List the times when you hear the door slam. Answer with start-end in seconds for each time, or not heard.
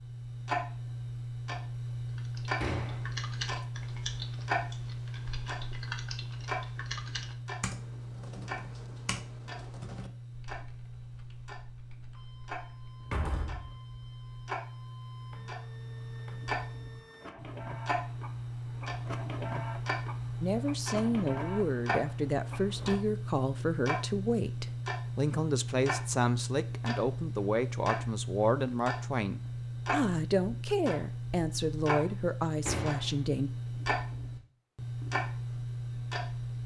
2.6-3.0, 13.0-13.8, 32.6-33.1.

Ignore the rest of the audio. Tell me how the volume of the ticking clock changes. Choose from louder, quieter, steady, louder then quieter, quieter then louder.
quieter then louder.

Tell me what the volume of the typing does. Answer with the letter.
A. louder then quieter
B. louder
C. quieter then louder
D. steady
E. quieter
E.